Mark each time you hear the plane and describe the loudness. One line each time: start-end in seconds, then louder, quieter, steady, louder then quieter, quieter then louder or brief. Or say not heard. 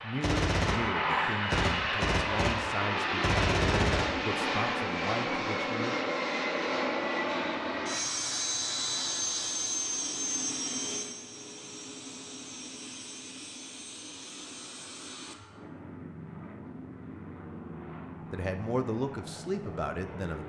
0.0-20.4 quieter.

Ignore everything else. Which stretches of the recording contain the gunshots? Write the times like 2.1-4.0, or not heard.
0.2-4.2.